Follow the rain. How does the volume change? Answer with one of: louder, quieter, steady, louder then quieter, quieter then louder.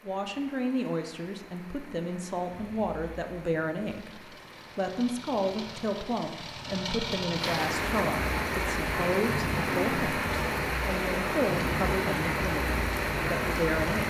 louder.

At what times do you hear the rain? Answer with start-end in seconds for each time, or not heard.
0.0-14.0.